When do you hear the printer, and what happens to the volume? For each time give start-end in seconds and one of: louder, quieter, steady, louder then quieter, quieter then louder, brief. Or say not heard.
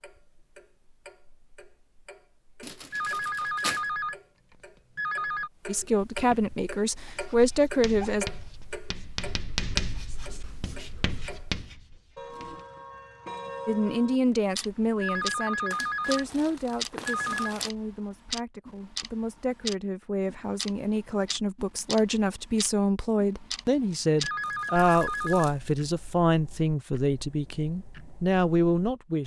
not heard.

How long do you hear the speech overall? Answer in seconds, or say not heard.
18 s.